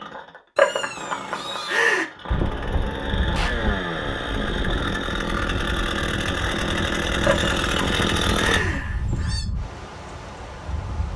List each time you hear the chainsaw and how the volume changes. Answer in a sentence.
You can hear the chainsaw from 0.0 to 8.6 s, getting louder.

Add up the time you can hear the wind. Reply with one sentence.
You can hear the wind for 9 seconds altogether.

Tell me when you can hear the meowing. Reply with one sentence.
The meowing can be heard from 0.6 to 2.0 s and from 7.2 to 9.4 s.